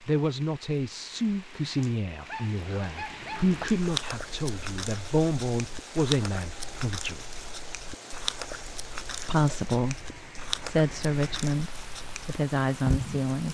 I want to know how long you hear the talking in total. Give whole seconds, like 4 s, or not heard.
11 s.